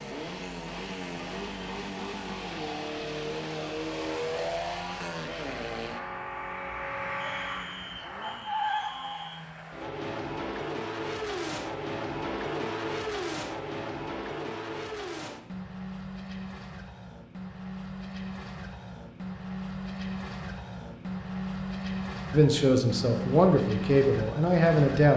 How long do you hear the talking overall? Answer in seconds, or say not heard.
3 s.